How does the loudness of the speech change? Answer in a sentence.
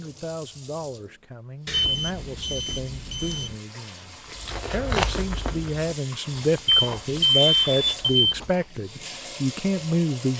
The loudness of the speech goes up.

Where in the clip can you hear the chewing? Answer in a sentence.
The chewing can be heard from 4.2 to 8.7 s.